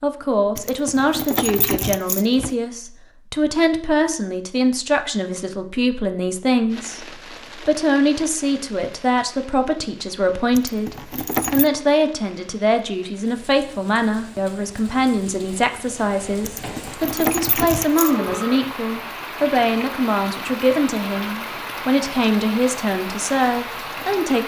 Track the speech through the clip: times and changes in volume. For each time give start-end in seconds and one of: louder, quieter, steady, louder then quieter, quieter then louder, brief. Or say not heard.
0.0-24.4 steady.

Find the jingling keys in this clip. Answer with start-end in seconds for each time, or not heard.
0.6-2.5, 10.5-11.7, 16.4-18.4.